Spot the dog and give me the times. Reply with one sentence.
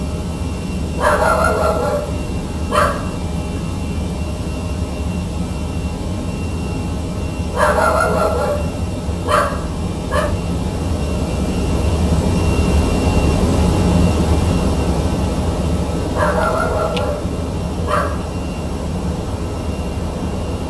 You can hear the dog from 0.9 to 3.1 s, from 7.5 to 10.3 s and from 16.1 to 18.2 s.